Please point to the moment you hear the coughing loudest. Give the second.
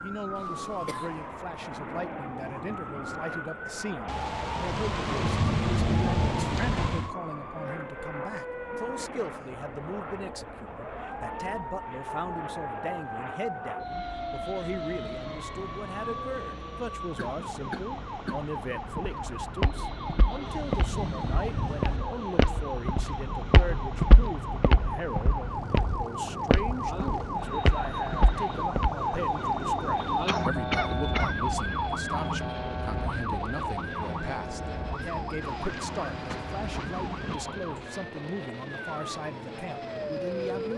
31 s.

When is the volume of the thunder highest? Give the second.
6 s.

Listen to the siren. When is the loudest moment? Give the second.
30 s.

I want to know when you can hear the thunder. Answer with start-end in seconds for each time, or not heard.
4.0-7.1, 20.4-22.0, 35.4-37.4.